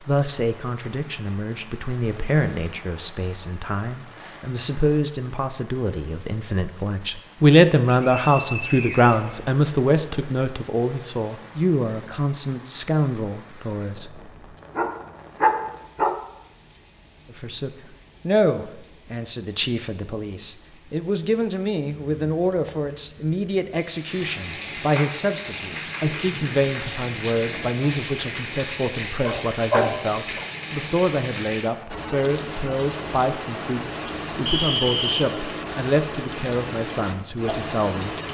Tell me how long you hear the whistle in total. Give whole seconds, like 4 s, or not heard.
3 s.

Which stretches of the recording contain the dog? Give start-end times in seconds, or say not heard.
14.8-16.1, 29.1-30.4.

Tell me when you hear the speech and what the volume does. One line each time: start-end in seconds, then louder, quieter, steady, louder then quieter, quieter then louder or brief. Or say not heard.
0.1-14.3 louder then quieter
17.3-38.1 steady.